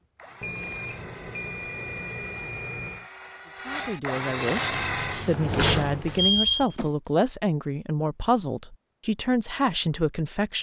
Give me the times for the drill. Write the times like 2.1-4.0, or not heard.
0.0-5.3.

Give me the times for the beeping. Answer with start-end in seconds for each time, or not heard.
0.4-3.1, 6.2-6.9.